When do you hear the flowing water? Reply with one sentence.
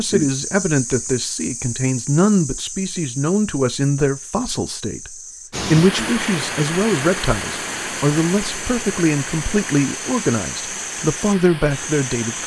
The flowing water can be heard from 5.5 to 12.4 s.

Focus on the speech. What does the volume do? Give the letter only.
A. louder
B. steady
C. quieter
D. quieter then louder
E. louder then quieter
B.